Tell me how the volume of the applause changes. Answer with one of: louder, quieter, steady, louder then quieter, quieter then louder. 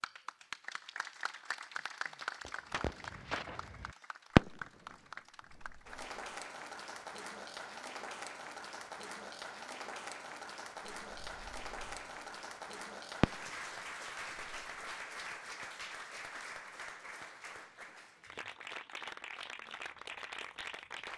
steady.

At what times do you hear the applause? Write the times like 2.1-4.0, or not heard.
0.0-21.1.